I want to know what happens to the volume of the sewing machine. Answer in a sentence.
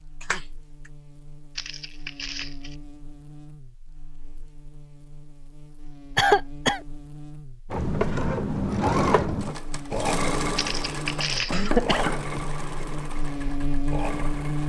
The volume of the sewing machine goes down.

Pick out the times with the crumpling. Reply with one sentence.
The crumpling can be heard from 1.6 to 2.8 s and from 10.6 to 11.7 s.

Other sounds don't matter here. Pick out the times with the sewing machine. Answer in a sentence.
You can hear the sewing machine from 7.7 to 14.6 s.